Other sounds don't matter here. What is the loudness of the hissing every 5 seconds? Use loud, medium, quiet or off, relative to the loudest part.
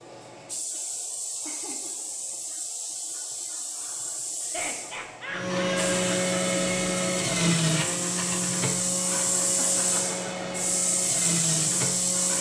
medium, loud, loud.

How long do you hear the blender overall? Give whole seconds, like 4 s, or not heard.
7 s.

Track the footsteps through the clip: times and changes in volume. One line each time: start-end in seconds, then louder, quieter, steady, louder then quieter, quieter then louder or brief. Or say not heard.
not heard.